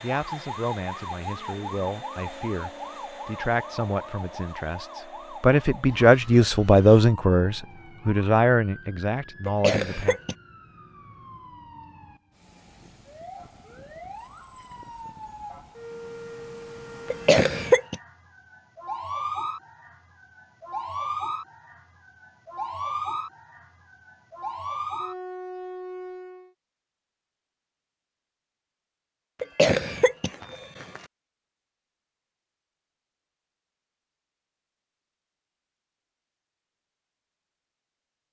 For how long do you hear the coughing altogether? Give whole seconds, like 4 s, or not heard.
3 s.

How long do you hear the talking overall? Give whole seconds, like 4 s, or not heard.
10 s.